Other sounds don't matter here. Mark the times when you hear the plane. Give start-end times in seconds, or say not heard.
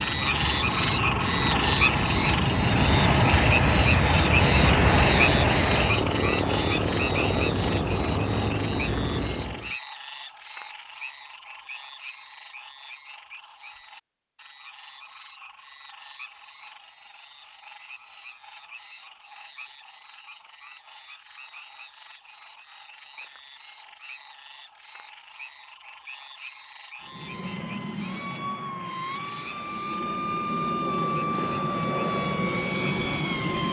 0.0-9.8, 27.1-33.6.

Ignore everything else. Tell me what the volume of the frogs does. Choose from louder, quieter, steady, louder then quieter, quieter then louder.
quieter.